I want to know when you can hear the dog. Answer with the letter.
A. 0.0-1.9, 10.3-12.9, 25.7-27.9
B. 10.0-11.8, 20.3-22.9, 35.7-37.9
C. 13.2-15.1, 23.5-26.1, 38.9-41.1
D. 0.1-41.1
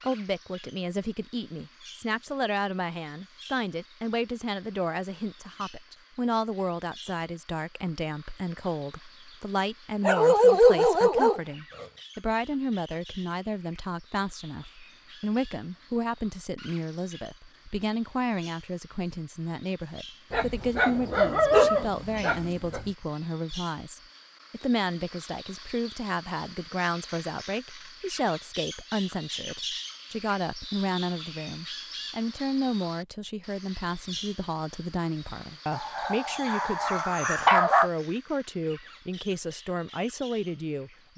B.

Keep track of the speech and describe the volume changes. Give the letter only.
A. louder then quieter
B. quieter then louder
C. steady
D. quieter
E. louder
C.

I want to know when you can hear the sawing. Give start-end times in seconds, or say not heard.
not heard.